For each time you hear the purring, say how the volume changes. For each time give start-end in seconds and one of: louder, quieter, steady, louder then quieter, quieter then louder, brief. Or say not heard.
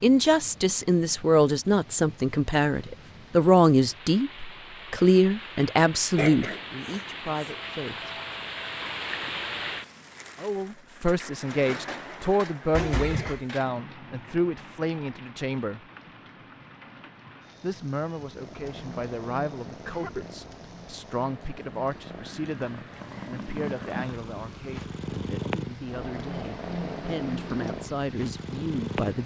18.3-29.2 louder.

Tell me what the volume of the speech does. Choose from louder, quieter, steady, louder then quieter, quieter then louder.
quieter.